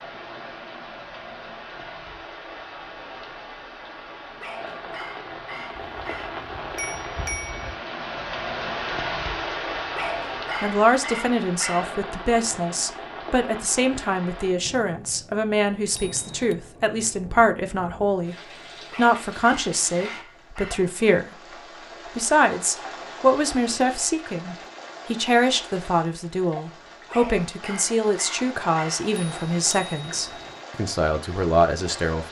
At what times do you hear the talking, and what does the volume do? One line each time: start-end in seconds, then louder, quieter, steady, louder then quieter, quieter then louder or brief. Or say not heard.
10.6-18.4 steady
18.9-32.2 steady.